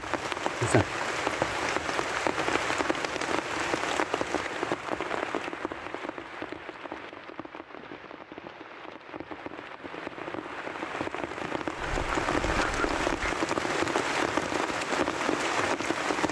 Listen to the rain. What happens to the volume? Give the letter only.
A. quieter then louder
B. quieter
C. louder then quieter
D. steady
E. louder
A.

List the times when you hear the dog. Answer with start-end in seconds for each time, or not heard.
11.8-13.3.